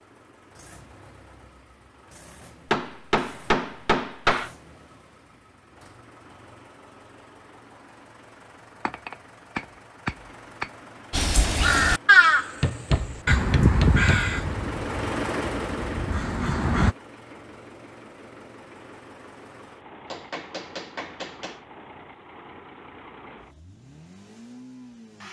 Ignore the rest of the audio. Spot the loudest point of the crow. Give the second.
12 s.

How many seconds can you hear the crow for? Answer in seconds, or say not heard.
6 s.